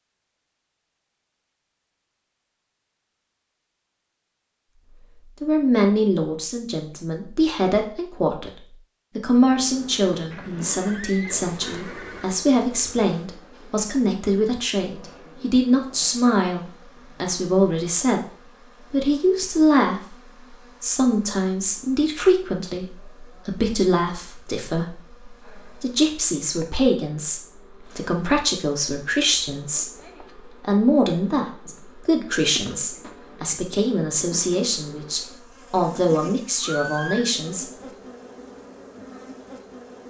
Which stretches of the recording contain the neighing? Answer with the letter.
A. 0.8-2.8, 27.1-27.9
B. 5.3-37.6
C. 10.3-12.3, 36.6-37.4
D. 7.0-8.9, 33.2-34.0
C.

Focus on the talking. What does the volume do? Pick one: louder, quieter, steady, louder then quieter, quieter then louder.
steady.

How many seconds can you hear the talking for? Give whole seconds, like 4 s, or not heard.
32 s.